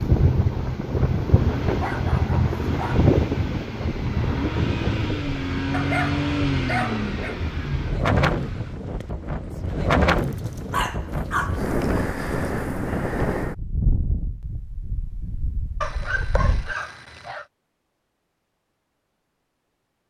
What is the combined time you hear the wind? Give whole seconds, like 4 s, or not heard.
17 s.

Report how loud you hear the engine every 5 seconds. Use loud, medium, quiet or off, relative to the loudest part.
medium, loud, off, off.